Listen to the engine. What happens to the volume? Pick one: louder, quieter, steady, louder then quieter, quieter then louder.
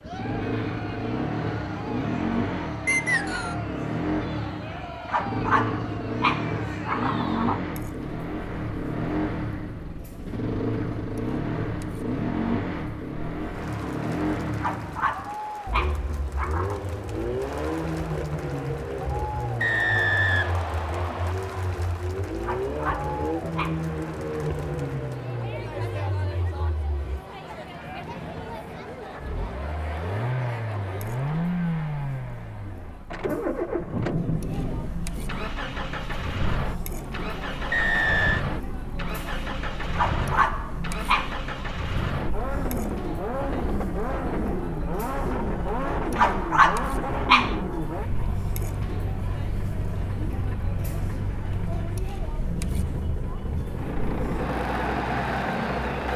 steady.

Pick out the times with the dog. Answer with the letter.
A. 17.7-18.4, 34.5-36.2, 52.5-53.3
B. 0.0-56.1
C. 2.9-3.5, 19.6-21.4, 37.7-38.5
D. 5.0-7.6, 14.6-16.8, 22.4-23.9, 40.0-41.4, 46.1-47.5
D.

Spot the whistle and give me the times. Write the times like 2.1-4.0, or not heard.
2.9-3.5, 19.6-21.4, 37.7-38.5.